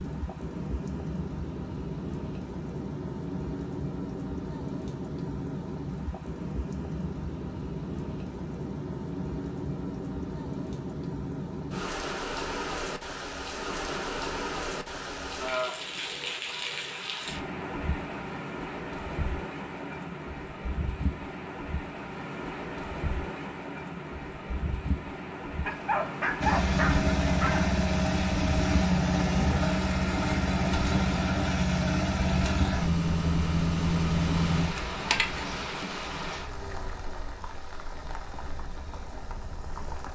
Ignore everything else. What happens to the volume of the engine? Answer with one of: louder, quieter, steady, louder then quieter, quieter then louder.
steady.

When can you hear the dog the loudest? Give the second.
26 s.